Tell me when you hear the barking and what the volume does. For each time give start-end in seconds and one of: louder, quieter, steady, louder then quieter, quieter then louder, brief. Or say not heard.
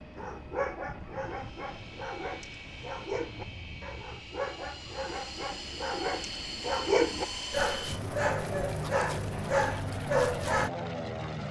0.1-10.7 louder.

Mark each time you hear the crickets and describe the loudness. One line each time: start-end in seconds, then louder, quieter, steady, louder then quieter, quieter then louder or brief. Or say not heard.
not heard.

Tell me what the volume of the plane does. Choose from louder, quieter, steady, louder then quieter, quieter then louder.
louder.